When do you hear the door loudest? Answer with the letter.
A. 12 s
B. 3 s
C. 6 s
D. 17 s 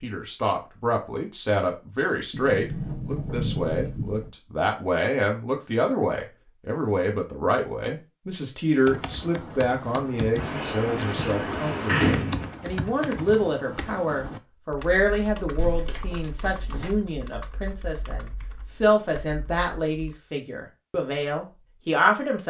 A.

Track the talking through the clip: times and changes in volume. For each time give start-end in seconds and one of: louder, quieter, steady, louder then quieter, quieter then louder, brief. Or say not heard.
0.0-22.4 steady.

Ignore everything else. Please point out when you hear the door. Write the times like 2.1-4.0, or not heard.
2.3-4.3, 10.3-12.6, 15.6-16.9.